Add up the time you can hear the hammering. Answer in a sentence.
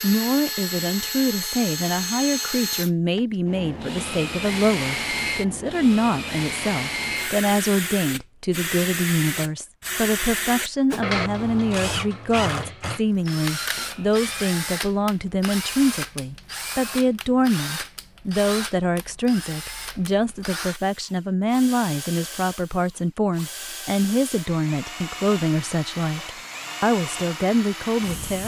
You can hear the hammering for 2 seconds altogether.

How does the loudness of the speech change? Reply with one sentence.
The volume of the speech stays about the same.